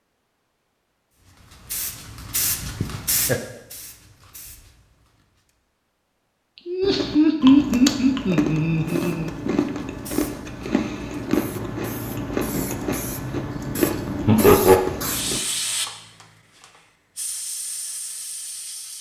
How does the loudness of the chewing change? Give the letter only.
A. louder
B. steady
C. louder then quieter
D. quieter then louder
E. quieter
B.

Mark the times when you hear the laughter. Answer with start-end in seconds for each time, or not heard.
2.6-3.4, 6.7-9.3, 14.2-14.8.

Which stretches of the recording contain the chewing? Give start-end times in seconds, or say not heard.
6.8-15.4.